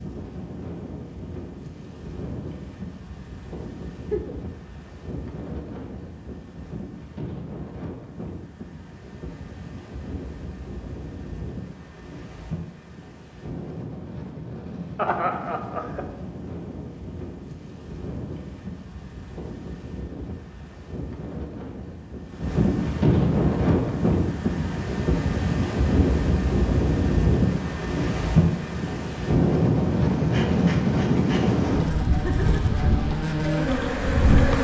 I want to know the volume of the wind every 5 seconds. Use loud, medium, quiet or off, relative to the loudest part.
quiet, quiet, quiet, quiet, loud, loud, loud.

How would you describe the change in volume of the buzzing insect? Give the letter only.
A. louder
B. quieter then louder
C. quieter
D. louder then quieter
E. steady
A.